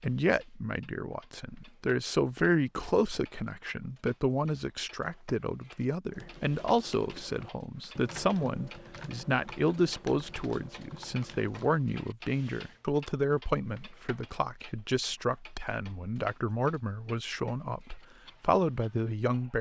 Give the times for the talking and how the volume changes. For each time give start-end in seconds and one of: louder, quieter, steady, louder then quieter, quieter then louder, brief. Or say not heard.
0.0-19.5 steady.